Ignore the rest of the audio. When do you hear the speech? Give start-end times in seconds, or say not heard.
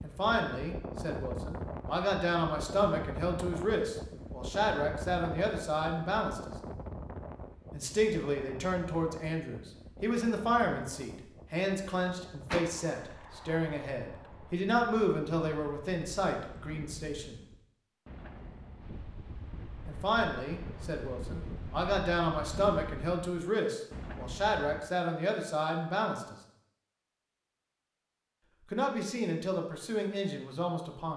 0.0-6.5, 7.7-17.4, 19.9-26.4, 28.7-31.1.